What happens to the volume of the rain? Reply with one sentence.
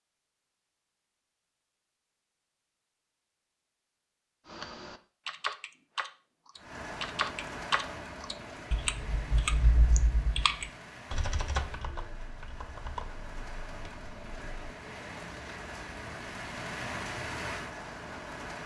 The loudness of the rain goes down, then up.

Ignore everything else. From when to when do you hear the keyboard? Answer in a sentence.
You can hear the keyboard from 4.5 to 14.7 s.